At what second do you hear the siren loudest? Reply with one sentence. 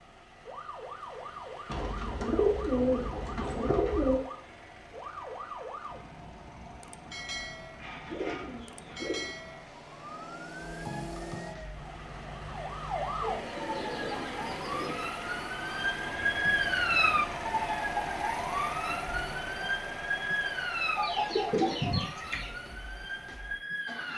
The volume of the siren peaks at 17 seconds.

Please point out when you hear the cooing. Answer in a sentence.
The cooing can be heard from 1.6 to 4.2 s, from 7.8 to 9.3 s, from 13.2 to 15.1 s and from 20.9 to 22.5 s.